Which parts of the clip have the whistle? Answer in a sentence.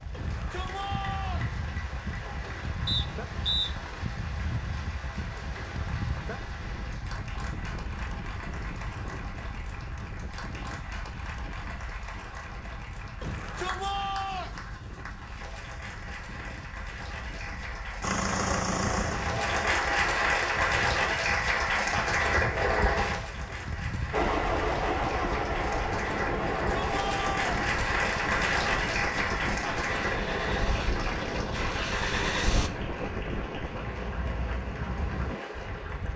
You can hear the whistle from 2.9 to 3.7 s.